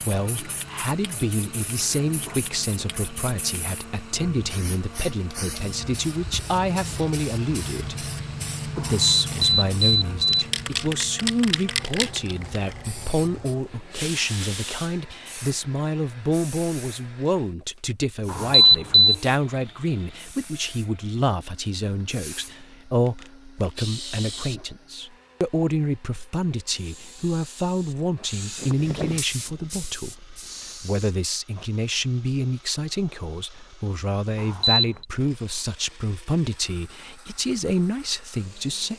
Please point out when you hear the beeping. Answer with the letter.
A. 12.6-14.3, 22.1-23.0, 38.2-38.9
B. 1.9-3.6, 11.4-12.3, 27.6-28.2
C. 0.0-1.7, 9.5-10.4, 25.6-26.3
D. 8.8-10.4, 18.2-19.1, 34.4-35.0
D.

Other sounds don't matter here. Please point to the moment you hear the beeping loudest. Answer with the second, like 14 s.
19 s.